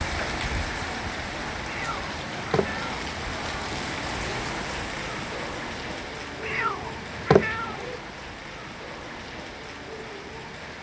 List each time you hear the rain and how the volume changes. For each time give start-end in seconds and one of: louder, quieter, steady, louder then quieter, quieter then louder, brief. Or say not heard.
0.0-10.7 quieter.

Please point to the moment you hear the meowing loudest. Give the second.
7 s.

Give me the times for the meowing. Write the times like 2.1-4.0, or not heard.
1.6-2.9, 6.4-7.8.